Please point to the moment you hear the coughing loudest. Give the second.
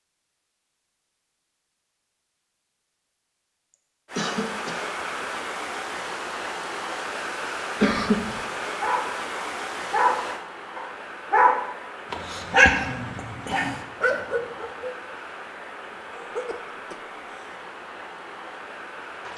8 s.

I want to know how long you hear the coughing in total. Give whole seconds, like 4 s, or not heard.
3 s.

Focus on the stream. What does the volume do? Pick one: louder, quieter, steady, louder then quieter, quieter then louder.
quieter.